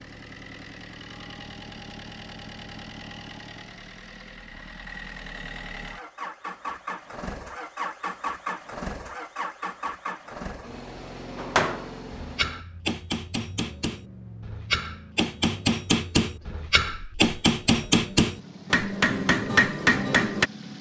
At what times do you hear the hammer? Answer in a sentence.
The hammer can be heard from 11.3 to 20.5 s.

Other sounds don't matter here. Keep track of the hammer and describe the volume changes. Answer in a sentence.
The loudness of the hammer goes up.